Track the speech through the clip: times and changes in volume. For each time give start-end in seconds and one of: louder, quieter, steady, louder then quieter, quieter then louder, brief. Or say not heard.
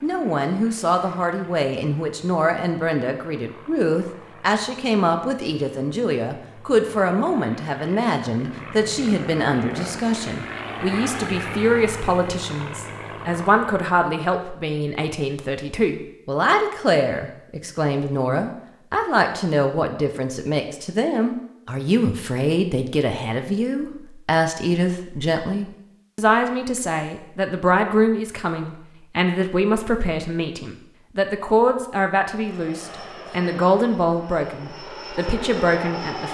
0.0-36.2 steady.